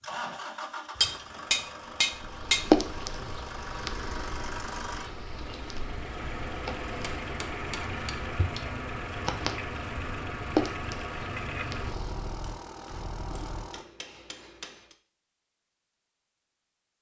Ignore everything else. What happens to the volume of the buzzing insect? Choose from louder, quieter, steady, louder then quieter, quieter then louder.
quieter then louder.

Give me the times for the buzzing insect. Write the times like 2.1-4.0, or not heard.
2.1-12.3.